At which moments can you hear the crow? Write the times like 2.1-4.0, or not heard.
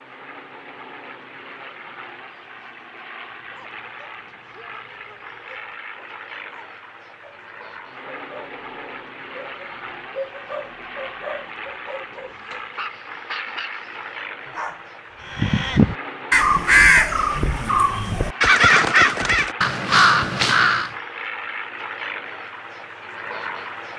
15.3-20.9.